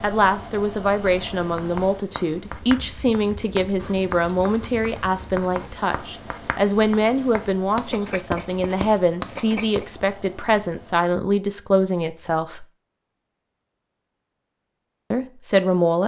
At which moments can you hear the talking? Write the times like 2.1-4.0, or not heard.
0.0-12.7, 15.1-16.0.